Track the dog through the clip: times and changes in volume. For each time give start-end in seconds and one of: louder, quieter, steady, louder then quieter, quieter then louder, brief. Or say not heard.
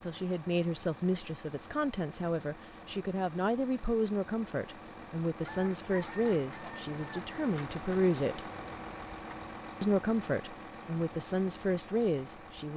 not heard.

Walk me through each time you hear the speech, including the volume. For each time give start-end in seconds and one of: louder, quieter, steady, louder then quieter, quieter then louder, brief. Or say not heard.
0.0-8.5 steady
9.8-12.7 brief.